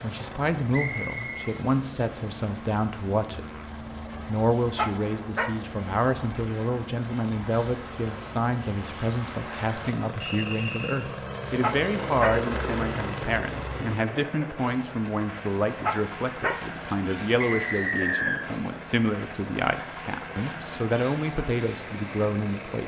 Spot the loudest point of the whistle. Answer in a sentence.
The volume of the whistle peaks at 18 seconds.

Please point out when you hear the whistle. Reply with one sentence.
The whistle can be heard from 0.7 to 1.4 s, from 10.2 to 11.0 s and from 17.4 to 18.4 s.